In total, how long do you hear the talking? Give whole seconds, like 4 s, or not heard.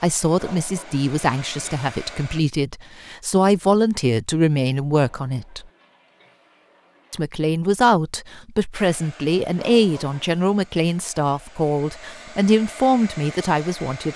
13 s.